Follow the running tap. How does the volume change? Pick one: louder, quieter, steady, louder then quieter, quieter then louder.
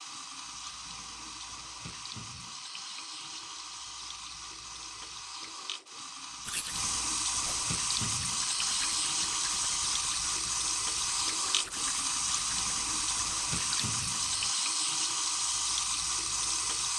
louder.